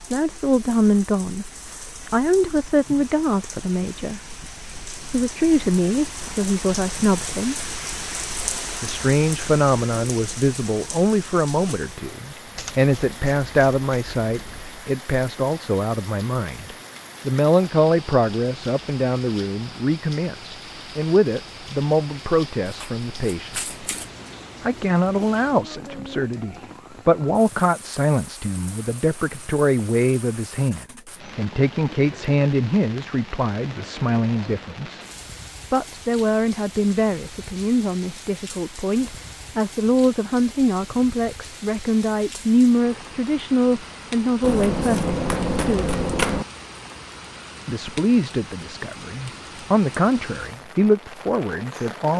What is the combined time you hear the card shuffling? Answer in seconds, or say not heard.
6 s.